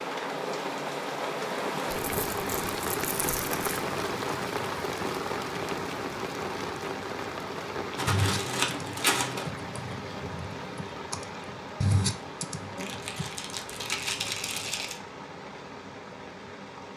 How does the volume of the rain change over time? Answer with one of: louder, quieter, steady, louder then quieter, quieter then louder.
quieter.